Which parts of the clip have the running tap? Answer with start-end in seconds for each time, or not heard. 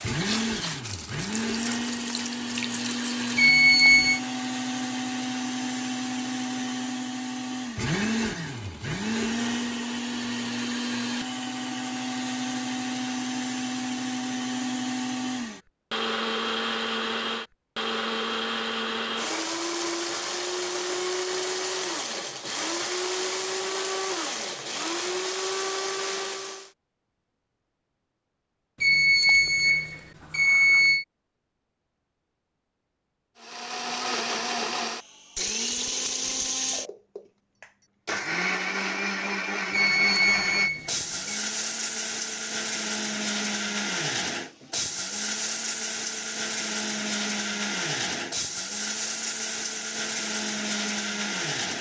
0.0-3.3.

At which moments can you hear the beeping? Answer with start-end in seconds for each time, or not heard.
3.4-4.2, 28.8-31.1, 39.7-41.4.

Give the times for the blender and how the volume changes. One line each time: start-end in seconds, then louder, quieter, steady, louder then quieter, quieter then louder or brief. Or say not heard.
0.0-26.7 steady
33.4-51.7 steady.